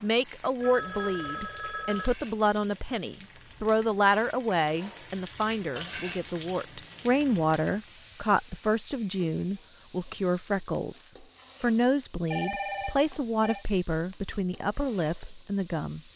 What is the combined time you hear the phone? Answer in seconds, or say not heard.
3 s.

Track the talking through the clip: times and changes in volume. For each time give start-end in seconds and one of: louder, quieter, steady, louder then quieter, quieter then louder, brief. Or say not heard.
0.0-16.0 steady.